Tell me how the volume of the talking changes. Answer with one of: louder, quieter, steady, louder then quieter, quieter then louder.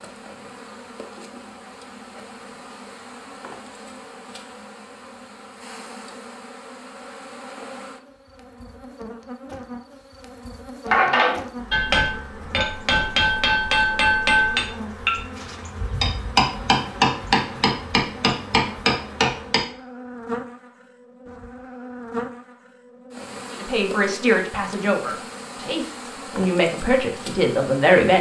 quieter then louder.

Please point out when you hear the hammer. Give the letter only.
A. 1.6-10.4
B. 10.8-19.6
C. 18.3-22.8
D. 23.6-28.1
B.